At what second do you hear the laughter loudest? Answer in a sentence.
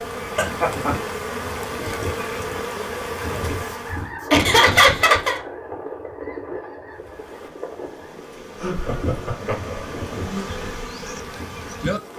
The volume of the laughter peaks at 5 seconds.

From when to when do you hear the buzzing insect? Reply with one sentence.
You can hear the buzzing insect from 0.0 to 4.1 s and from 6.9 to 12.1 s.